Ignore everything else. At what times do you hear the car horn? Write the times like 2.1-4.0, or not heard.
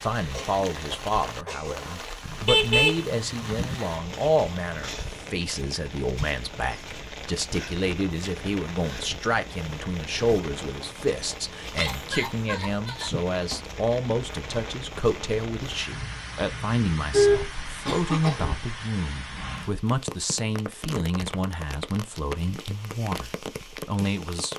2.2-3.8, 15.9-17.4.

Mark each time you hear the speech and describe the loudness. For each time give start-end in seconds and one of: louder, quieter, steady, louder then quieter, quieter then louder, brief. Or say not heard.
0.0-24.5 steady.